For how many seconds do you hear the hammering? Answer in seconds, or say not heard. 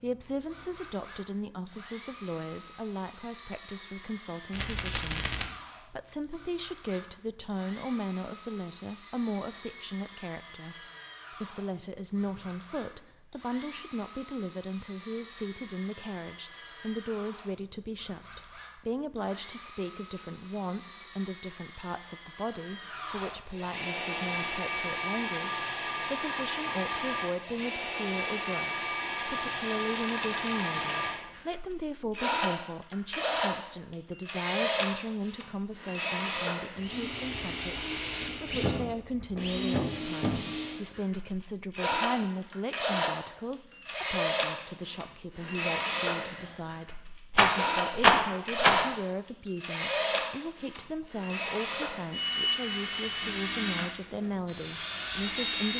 not heard.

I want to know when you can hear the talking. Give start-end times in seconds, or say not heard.
0.0-55.7.